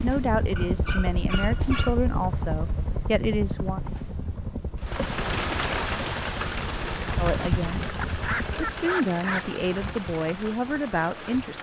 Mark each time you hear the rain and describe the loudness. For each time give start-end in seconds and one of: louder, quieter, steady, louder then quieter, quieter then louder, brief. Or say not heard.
4.8-11.5 quieter.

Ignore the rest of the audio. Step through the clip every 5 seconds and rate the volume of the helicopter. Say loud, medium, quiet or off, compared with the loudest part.
loud, medium, off.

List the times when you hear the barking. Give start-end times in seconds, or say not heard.
0.6-1.9, 8.0-9.6.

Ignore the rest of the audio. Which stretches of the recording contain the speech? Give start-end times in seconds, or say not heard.
0.0-3.8, 7.2-7.9, 8.6-11.5.